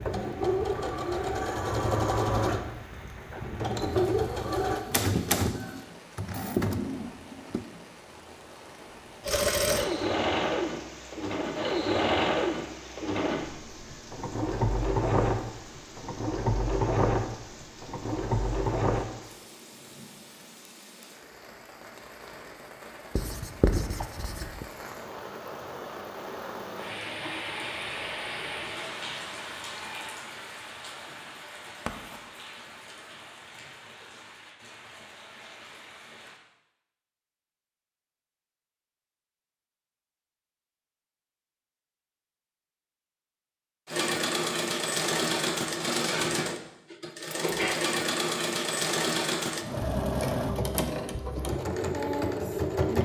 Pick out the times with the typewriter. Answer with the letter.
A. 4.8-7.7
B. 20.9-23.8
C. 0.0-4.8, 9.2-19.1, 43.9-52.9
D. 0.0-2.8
A.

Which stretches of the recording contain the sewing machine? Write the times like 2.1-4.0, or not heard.
0.0-4.8, 9.2-19.1, 43.9-52.9.